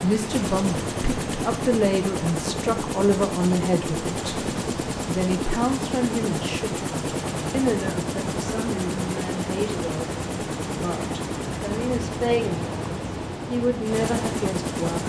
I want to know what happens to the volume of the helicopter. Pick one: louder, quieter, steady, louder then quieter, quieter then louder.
steady.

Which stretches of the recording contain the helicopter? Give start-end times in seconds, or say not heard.
0.0-15.0.